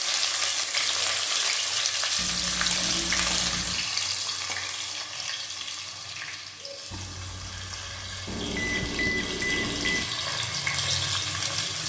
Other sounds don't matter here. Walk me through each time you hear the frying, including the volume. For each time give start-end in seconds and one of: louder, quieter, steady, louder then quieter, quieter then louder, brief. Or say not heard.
0.0-11.8 quieter then louder.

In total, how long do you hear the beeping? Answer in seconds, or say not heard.
2 s.